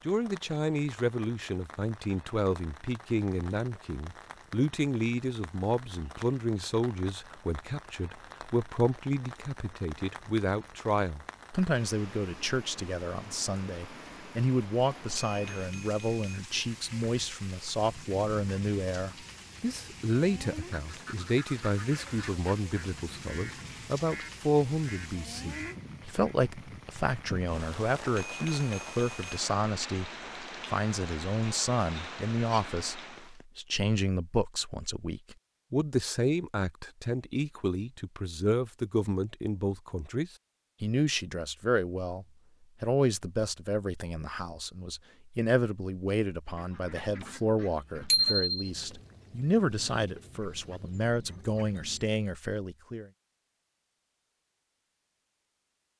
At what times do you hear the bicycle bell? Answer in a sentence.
The bicycle bell can be heard from 15.1 to 16.4 s, from 28.1 to 29.4 s and from 48.1 to 48.7 s.